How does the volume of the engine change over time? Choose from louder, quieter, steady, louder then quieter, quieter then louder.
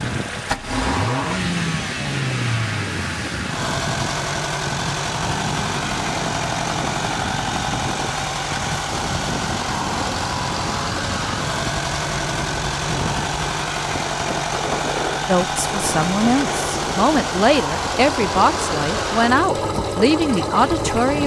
steady.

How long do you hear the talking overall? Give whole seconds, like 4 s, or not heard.
6 s.